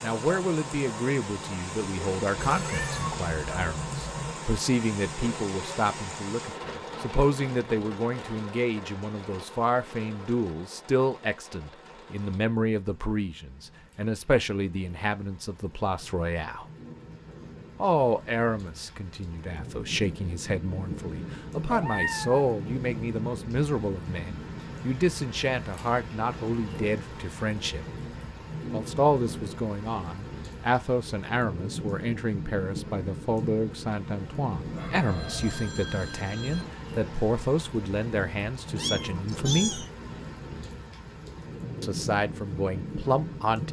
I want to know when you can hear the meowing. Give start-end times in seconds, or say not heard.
2.4-4.3, 21.6-22.4, 38.8-39.9.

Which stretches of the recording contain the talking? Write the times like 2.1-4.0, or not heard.
0.0-16.6, 17.8-27.9, 28.7-39.9, 41.8-43.6.